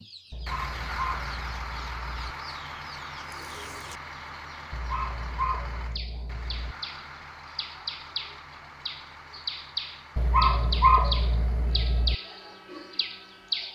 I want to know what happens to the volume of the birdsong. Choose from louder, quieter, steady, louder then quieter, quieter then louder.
louder.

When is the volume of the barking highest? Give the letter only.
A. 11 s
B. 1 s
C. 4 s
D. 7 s
A.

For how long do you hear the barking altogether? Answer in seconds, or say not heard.
6 s.